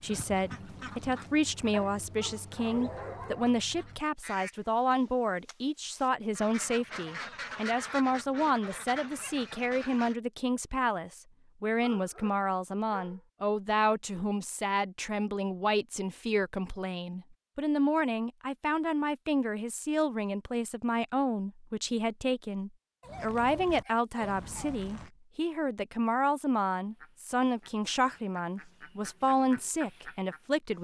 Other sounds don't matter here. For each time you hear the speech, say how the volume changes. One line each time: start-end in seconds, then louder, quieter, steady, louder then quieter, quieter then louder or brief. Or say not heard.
0.0-30.7 steady.